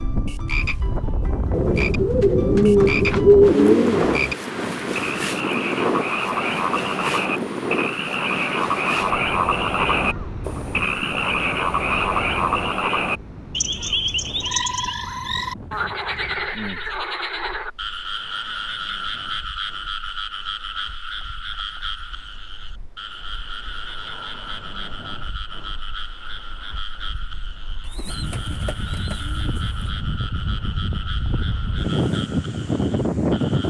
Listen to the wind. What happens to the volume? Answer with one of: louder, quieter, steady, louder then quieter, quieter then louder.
quieter then louder.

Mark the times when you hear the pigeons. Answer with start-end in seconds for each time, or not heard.
1.5-4.3, 27.9-29.9.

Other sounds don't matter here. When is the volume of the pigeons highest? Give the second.
3 s.